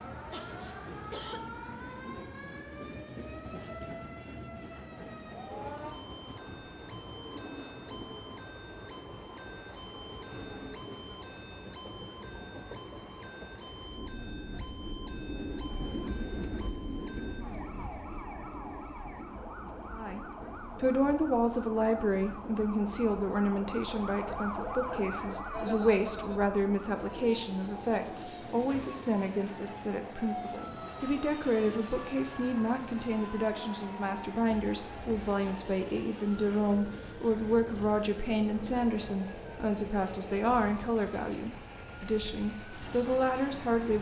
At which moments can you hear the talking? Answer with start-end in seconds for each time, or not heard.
19.9-43.9.